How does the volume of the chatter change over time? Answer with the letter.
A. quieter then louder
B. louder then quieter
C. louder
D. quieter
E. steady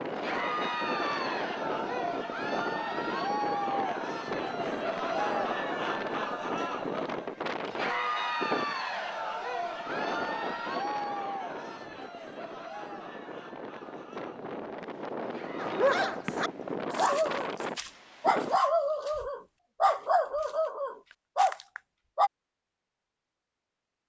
D.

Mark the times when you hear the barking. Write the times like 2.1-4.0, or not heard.
15.6-22.3.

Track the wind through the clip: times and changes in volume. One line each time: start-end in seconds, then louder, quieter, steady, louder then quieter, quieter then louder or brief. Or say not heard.
0.0-18.6 quieter then louder.